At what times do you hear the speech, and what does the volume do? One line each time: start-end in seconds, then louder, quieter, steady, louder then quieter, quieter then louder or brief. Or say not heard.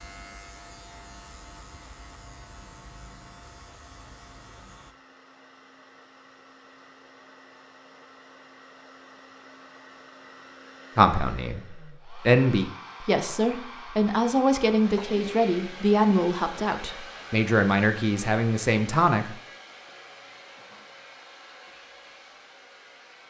10.9-19.4 steady.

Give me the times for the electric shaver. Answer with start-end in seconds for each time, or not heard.
0.0-5.0.